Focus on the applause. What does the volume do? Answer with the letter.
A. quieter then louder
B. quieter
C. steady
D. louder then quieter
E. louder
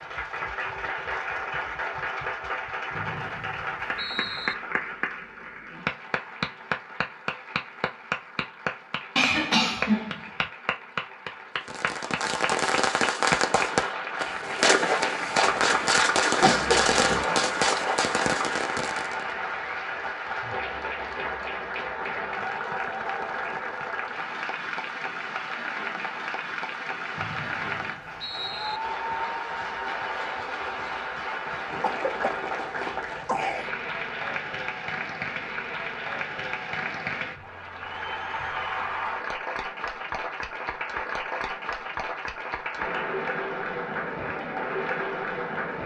C.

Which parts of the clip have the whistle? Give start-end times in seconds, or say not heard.
3.0-4.5, 27.1-28.8.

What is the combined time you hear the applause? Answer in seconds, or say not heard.
46 s.